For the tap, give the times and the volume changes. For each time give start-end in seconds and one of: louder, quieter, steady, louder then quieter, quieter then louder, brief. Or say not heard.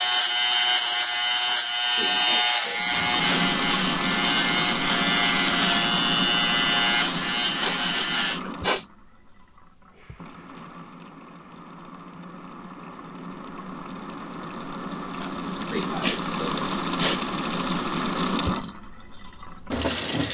2.8-20.2 quieter then louder.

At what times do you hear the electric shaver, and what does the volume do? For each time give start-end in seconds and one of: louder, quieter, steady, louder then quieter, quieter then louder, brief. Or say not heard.
0.0-8.4 steady.